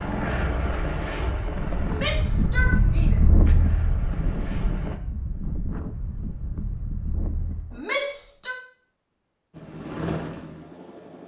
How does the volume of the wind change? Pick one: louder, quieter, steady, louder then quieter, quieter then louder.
louder then quieter.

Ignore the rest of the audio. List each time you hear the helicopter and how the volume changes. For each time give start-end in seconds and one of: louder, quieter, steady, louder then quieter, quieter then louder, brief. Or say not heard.
0.0-5.0 quieter
9.5-11.2 brief.